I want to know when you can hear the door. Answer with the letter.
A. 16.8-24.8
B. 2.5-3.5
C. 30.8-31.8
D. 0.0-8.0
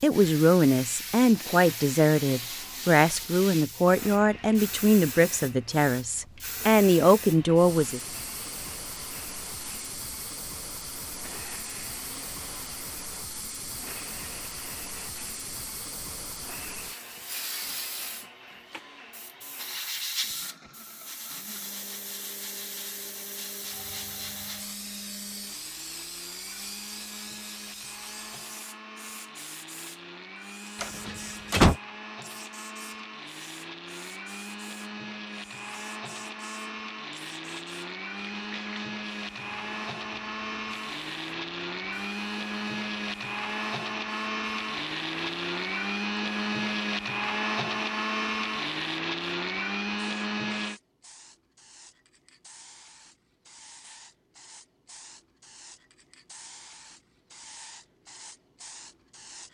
C.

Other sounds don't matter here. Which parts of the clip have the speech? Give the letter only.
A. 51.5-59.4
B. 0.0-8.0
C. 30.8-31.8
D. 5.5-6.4
B.